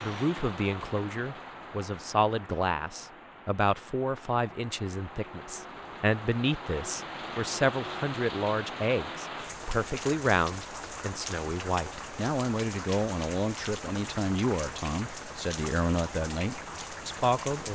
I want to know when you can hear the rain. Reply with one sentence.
You can hear the rain from 0.0 to 17.7 s.